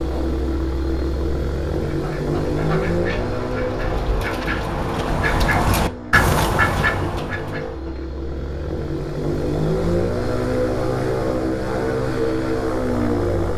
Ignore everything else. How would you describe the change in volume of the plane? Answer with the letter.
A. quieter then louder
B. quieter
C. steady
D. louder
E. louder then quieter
A.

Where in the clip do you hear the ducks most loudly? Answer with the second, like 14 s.
6 s.